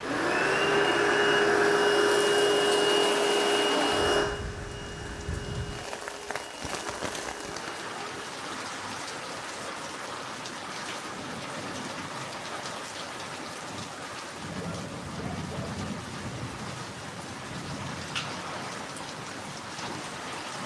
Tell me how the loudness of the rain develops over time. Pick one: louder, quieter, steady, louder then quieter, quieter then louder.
steady.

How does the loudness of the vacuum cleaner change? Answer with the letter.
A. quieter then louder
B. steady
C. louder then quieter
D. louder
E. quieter
E.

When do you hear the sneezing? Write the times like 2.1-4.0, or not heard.
not heard.